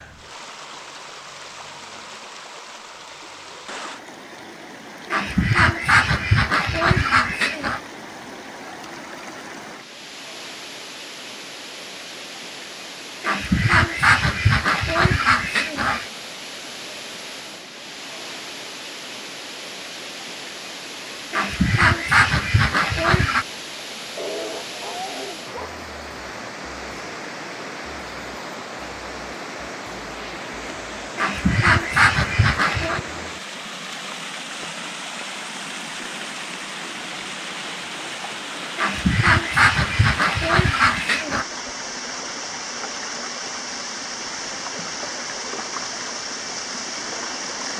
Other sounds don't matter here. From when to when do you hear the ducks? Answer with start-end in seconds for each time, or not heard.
5.1-7.8, 13.2-16.1, 21.3-23.4, 31.1-33.0, 38.8-41.5.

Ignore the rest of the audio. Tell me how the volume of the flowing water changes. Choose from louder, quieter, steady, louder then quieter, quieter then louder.
louder.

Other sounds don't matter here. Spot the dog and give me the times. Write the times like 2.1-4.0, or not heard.
24.1-25.8.